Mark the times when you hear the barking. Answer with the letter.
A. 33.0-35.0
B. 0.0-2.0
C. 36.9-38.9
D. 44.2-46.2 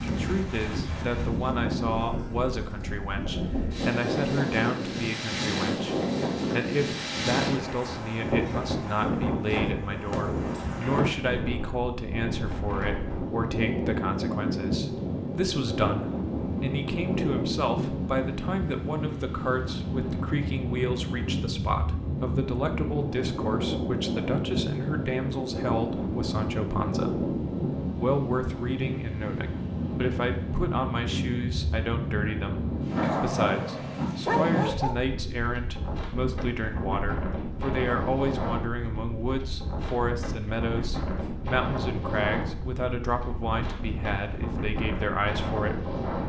A.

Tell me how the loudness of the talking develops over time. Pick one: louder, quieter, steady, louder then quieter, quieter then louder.
steady.